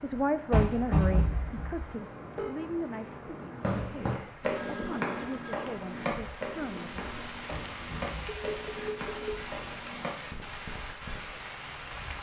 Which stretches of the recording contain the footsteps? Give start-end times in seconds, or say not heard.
3.6-11.2.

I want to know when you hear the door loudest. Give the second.
1 s.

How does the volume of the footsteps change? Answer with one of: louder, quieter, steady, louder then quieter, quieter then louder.
quieter.